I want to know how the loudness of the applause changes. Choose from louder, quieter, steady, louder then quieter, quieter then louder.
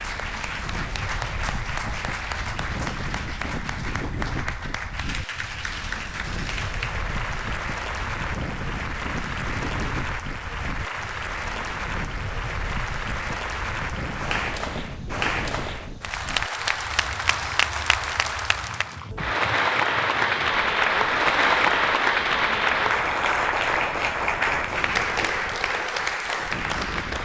louder.